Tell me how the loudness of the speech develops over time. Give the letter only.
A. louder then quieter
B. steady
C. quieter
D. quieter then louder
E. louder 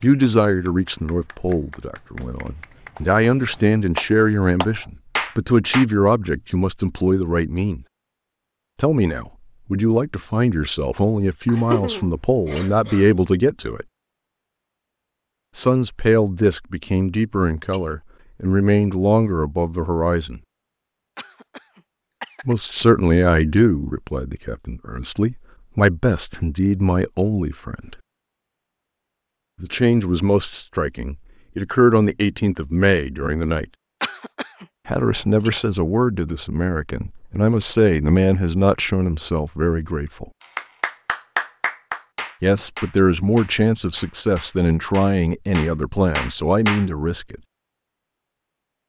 B.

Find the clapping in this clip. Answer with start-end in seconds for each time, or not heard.
0.0-5.8, 40.4-46.9.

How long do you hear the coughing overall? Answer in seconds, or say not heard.
4 s.